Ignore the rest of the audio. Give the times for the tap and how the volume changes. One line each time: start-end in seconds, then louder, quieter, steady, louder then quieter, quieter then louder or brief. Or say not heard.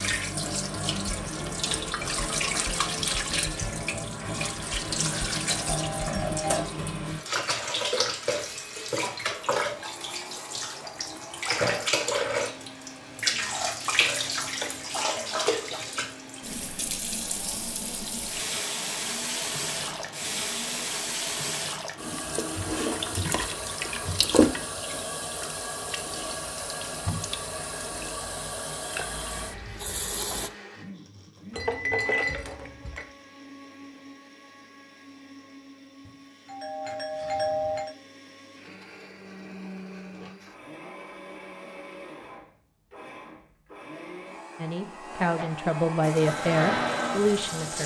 0.0-30.5 steady
46.0-47.8 brief.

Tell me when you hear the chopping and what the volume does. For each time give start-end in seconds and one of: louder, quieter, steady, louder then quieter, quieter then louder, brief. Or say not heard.
not heard.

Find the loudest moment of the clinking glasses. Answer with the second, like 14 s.
32 s.